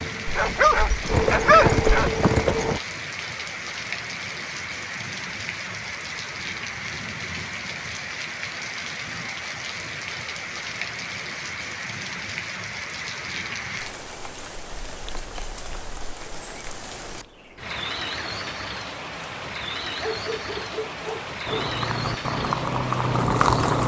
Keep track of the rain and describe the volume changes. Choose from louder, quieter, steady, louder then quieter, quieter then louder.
steady.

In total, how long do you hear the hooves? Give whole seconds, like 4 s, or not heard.
5 s.